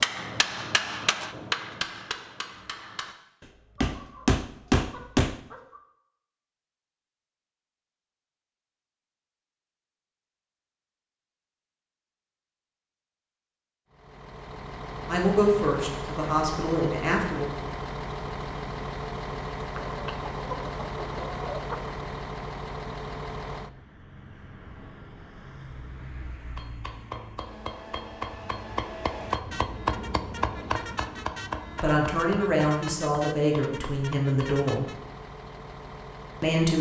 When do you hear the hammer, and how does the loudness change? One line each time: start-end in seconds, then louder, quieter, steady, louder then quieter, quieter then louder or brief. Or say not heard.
0.0-5.3 quieter then louder
26.6-34.6 louder then quieter.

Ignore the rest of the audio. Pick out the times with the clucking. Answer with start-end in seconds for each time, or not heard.
3.8-5.8, 19.8-21.9.